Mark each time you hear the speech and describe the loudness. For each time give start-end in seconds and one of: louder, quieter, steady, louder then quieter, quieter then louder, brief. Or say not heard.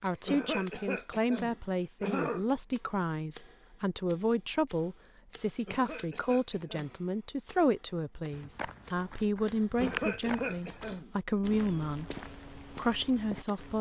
0.0-13.7 steady.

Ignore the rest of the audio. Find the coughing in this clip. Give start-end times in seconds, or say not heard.
0.2-2.5, 5.7-7.0, 9.8-11.1.